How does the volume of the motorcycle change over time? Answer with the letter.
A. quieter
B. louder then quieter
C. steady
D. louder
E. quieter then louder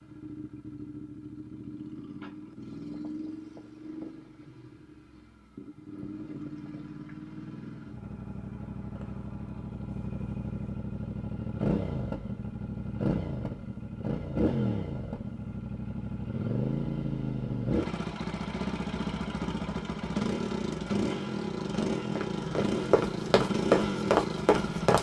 D.